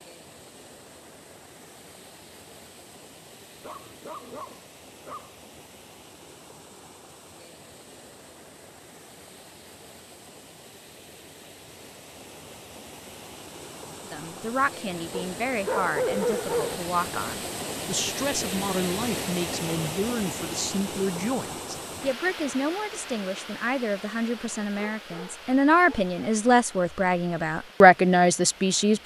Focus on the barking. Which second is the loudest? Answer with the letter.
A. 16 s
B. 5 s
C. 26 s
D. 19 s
A.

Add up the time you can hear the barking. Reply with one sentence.
You can hear the barking for 5 seconds altogether.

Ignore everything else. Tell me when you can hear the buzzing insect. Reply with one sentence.
The buzzing insect can't be heard in this clip.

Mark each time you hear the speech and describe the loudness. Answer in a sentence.
The speech can be heard from 14.1 to 29.0 s, getting louder.